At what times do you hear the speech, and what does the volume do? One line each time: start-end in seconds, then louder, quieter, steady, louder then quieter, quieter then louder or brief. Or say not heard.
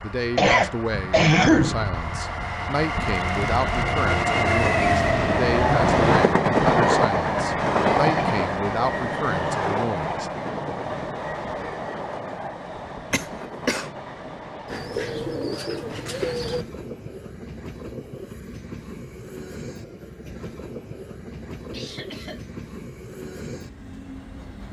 0.0-10.3 steady.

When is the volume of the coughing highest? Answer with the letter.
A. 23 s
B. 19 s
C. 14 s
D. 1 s
D.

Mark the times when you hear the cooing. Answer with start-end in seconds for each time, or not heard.
14.7-16.6.